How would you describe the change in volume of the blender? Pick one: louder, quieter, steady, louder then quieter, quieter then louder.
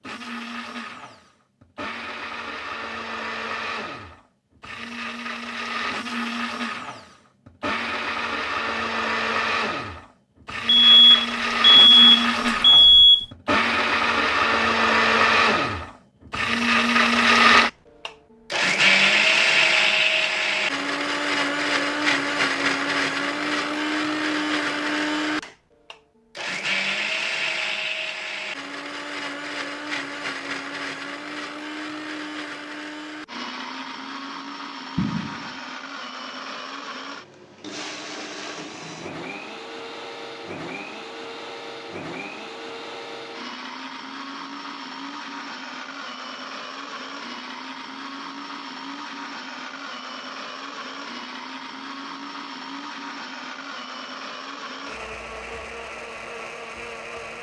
louder then quieter.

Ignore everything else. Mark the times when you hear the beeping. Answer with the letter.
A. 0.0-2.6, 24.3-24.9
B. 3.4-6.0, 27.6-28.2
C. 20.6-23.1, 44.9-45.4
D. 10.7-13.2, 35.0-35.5
D.